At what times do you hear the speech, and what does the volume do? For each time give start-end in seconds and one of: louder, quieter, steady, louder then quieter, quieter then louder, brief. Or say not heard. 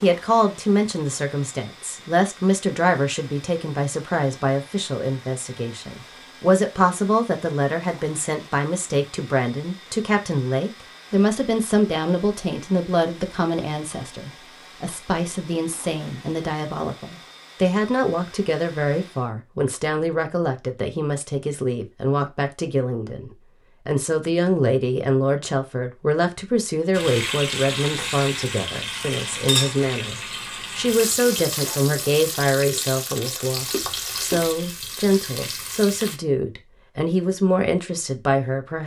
0.0-38.8 steady.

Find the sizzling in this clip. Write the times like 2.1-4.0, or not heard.
26.9-36.2.